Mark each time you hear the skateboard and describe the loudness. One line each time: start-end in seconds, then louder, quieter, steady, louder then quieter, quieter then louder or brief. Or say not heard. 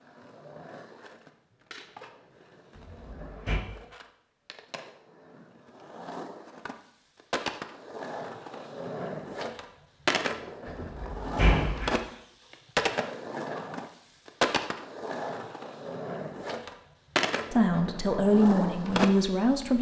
0.0-19.6 louder.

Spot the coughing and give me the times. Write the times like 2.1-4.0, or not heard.
not heard.